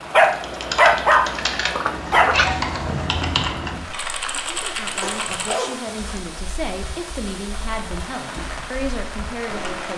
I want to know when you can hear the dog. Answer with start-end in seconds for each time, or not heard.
0.1-2.5, 5.0-6.3.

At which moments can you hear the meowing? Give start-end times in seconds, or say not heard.
2.3-3.5.